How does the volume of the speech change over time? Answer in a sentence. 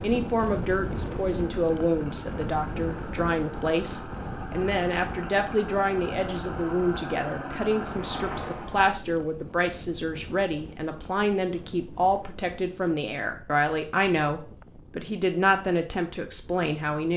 The volume of the speech stays about the same.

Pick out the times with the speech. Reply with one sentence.
You can hear the speech from 0.0 to 17.1 s.